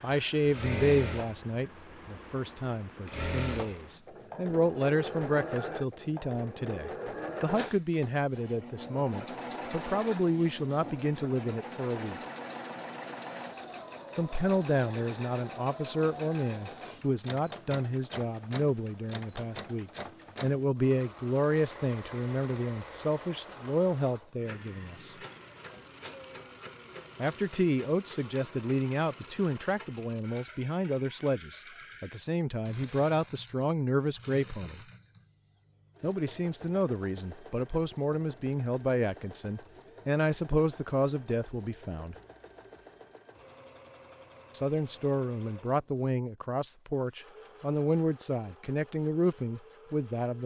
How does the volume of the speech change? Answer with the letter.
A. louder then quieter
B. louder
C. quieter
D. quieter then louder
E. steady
E.